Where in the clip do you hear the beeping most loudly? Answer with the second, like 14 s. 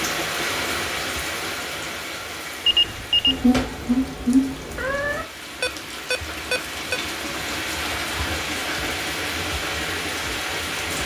3 s.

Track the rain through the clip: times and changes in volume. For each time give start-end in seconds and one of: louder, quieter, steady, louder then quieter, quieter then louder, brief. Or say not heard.
0.0-11.0 quieter then louder.